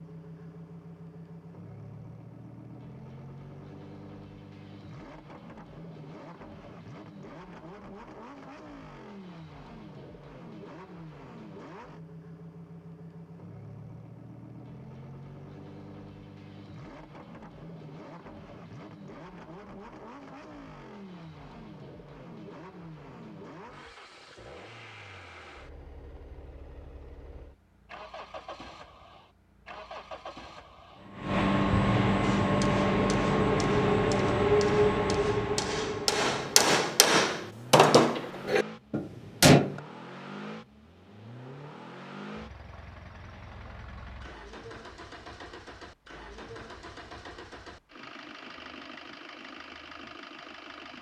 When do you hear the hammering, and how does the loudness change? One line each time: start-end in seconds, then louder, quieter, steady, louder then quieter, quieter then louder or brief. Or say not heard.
32.2-39.8 louder then quieter.